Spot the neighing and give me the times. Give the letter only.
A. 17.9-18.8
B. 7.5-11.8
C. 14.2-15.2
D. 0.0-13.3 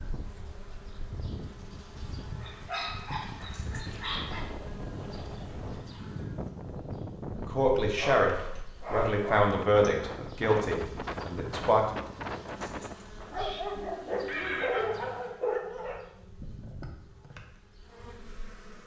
C.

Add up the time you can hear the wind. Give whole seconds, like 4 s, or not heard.
13 s.